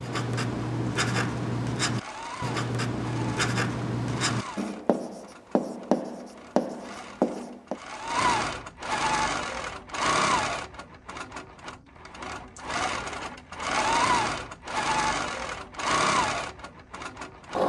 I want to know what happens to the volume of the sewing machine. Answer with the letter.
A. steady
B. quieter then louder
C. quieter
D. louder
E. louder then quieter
D.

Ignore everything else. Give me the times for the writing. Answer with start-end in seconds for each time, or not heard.
0.0-7.8.